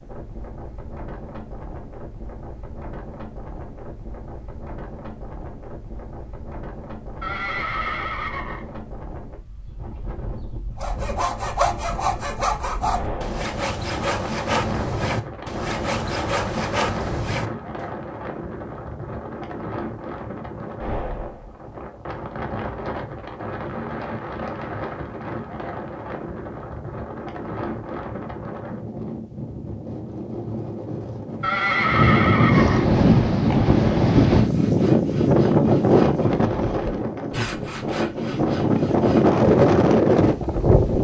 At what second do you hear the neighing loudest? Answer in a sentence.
The loudest moment of the neighing is at 32 seconds.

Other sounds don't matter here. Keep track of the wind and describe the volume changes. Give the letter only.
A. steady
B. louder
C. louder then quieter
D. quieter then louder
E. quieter
B.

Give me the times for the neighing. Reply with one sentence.
The neighing can be heard from 7.2 to 8.7 s and from 31.4 to 32.9 s.